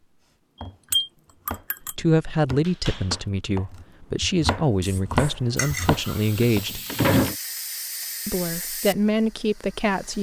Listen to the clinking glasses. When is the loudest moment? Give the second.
1 s.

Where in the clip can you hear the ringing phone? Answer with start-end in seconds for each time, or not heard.
not heard.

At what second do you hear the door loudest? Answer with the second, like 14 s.
7 s.